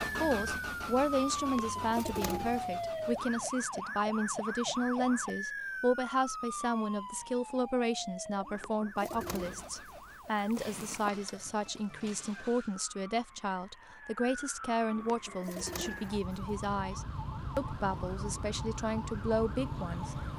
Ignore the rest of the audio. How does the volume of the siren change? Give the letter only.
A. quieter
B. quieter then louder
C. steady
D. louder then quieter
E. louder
B.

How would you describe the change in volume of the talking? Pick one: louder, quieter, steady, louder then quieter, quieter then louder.
steady.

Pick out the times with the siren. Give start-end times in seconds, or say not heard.
0.2-20.3.